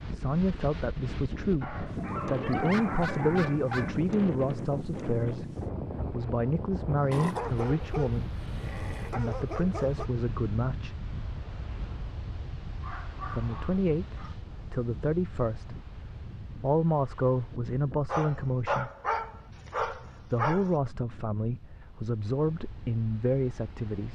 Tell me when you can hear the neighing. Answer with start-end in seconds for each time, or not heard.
not heard.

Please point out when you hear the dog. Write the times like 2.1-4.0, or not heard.
1.6-4.0, 7.1-10.1, 12.7-14.3, 18.1-20.8.